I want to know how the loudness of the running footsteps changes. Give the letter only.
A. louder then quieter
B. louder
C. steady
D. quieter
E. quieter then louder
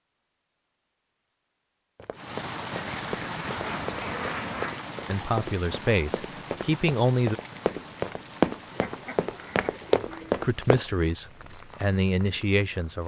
B.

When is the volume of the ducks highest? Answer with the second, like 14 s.
4 s.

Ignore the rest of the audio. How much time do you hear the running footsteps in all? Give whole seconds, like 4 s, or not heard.
9 s.